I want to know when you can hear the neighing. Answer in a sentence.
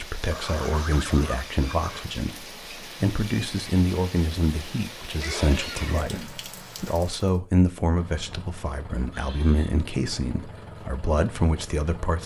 The neighing can be heard from 0.3 to 2.1 s, from 5.1 to 6.5 s and from 9.1 to 9.8 s.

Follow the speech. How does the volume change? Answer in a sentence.
The volume of the speech stays about the same.